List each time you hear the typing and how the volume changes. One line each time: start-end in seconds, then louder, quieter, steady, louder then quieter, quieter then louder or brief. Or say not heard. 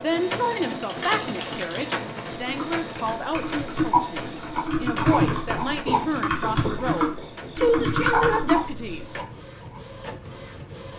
0.7-9.2 louder.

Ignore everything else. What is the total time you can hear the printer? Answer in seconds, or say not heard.
11 s.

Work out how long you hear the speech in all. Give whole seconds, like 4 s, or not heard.
9 s.